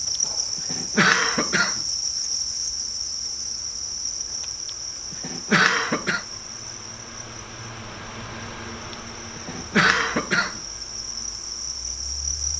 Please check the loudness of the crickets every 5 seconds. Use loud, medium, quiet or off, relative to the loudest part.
loud, medium, loud.